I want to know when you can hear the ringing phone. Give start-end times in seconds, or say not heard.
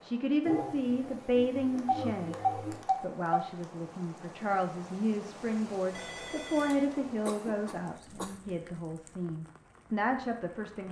1.8-3.5, 6.0-6.8.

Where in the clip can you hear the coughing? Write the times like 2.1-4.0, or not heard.
0.4-2.9, 7.2-8.4.